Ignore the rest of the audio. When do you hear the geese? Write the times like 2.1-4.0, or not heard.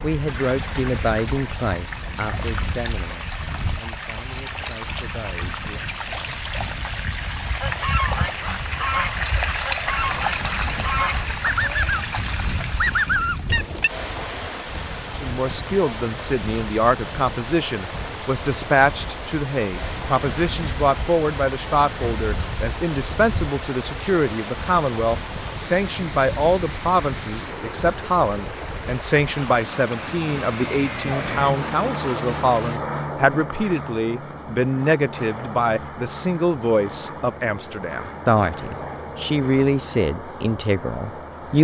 7.6-13.9.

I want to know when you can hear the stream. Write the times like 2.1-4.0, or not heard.
0.1-32.8.